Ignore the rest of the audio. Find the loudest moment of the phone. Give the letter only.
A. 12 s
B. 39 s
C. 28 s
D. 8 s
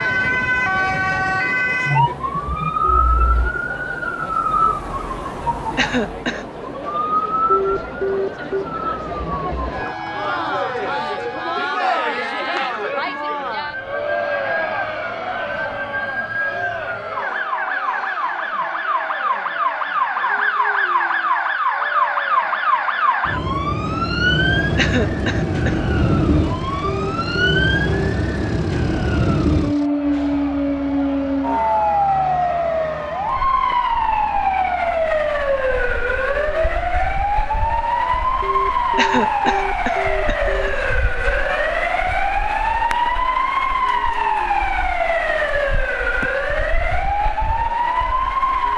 D.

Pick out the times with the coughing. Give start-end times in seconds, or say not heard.
5.8-6.5, 24.8-25.8, 39.0-40.7.